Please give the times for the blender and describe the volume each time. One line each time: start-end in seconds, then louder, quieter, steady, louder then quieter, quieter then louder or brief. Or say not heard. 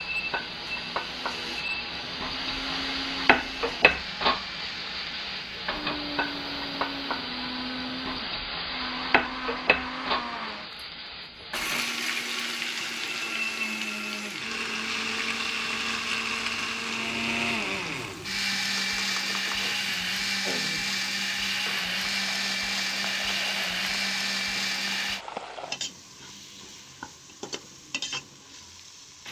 0.0-25.2 louder.